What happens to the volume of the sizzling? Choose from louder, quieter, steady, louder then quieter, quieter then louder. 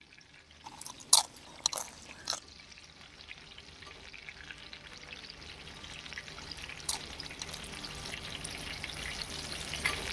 louder.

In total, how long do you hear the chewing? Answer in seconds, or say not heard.
3 s.